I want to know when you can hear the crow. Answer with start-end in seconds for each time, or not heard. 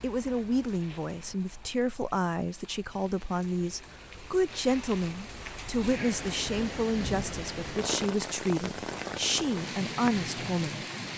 not heard.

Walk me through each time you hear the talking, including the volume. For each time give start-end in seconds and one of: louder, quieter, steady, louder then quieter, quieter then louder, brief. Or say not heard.
0.0-10.8 steady.